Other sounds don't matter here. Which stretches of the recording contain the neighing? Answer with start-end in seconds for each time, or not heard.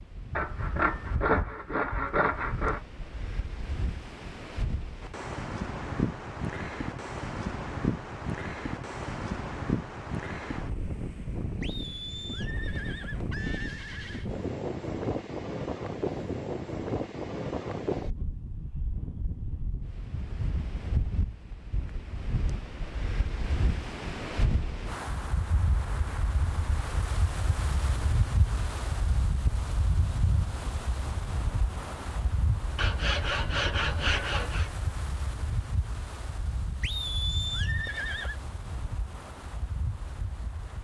11.6-14.3, 36.8-38.4.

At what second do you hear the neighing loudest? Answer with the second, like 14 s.
37 s.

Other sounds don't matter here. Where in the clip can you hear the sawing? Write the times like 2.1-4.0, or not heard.
0.3-2.8, 32.8-34.7.